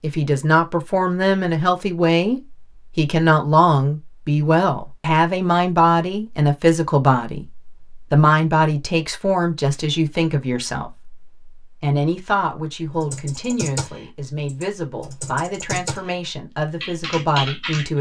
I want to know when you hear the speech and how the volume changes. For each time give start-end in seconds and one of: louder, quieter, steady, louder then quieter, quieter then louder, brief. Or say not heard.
0.0-17.9 quieter.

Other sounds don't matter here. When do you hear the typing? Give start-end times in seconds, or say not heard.
13.0-16.1, 16.8-17.9.